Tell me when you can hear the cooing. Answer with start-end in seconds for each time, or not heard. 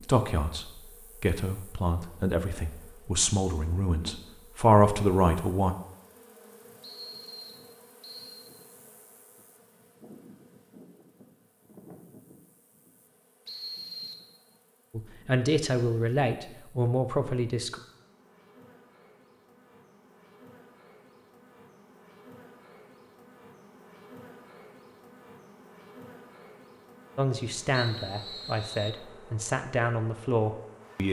not heard.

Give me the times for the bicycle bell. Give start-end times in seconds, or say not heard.
not heard.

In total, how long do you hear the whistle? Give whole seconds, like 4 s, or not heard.
4 s.